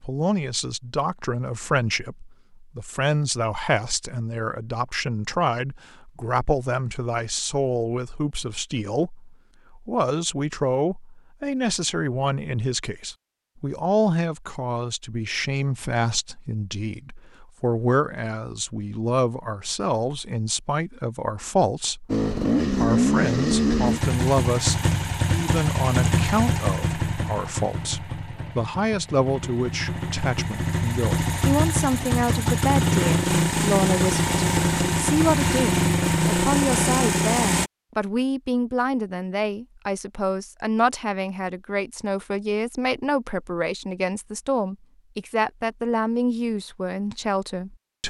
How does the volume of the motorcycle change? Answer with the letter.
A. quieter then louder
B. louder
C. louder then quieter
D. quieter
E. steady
A.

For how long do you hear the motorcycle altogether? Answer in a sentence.
The motorcycle can be heard for 16 seconds in total.